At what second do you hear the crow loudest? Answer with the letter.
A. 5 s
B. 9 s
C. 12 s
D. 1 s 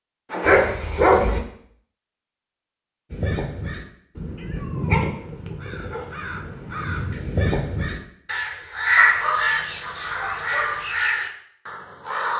B.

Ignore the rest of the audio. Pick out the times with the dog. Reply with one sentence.
You can hear the dog from 0.4 to 1.4 s, from 4.5 to 6.1 s and from 8.9 to 10.8 s.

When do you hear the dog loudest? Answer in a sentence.
The loudest moment of the dog is at 1 second.